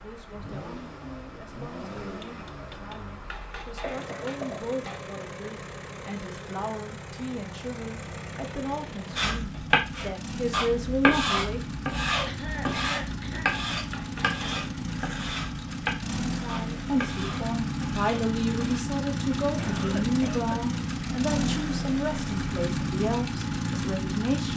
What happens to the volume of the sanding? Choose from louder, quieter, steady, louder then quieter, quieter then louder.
quieter.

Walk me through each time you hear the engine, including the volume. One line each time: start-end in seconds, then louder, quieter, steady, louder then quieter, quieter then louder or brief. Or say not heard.
0.0-24.5 louder.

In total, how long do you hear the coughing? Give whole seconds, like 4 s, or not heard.
3 s.